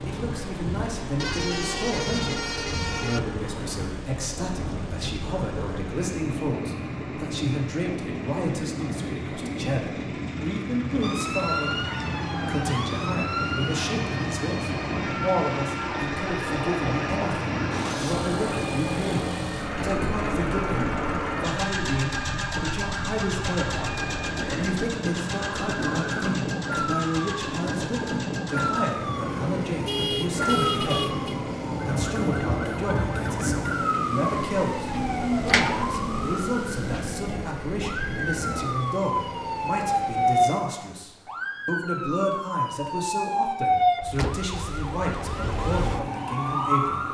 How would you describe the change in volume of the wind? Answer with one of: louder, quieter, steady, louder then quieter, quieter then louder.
steady.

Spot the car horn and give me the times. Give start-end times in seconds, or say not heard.
1.1-3.2, 29.9-31.4.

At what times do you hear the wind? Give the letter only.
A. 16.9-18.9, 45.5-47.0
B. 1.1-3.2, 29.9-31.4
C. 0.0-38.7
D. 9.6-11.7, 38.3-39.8
C.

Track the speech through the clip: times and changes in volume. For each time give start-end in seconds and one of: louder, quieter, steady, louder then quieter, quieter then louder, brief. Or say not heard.
0.1-47.0 steady.